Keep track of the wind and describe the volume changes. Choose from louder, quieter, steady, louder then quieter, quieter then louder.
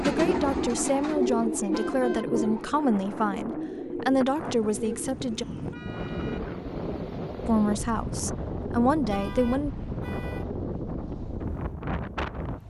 louder.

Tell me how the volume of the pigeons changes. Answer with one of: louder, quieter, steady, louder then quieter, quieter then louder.
quieter.